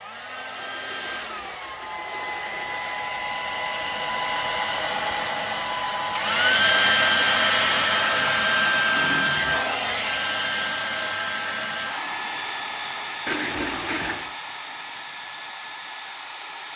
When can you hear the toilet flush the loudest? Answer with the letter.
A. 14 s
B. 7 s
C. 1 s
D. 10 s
A.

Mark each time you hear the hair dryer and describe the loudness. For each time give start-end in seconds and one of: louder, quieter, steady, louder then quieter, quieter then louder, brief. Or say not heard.
0.0-16.7 louder then quieter.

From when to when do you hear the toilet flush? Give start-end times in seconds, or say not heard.
0.5-3.0, 8.9-9.7, 13.2-14.3.